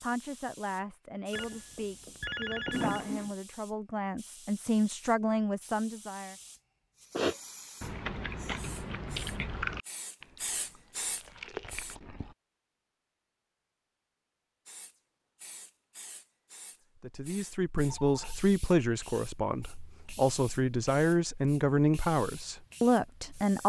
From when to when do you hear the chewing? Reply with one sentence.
The chewing can be heard from 7.1 to 12.3 s.